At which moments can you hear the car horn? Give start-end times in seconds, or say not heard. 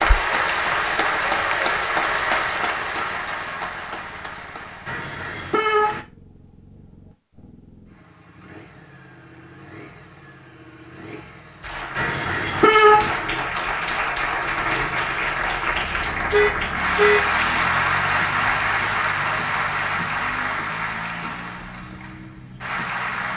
4.8-6.0, 11.9-13.1, 16.3-17.2.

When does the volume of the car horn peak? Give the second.
13 s.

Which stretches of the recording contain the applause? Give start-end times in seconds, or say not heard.
0.0-6.0, 11.6-23.3.